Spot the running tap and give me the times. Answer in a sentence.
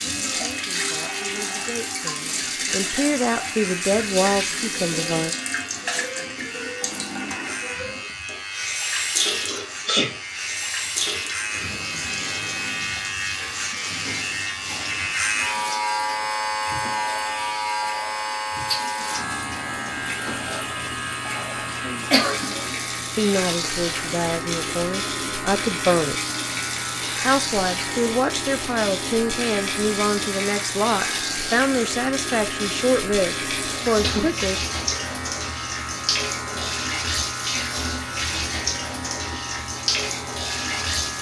You can hear the running tap from 0.0 to 41.1 s.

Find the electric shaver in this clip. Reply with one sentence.
You can hear the electric shaver from 0.0 to 41.1 s.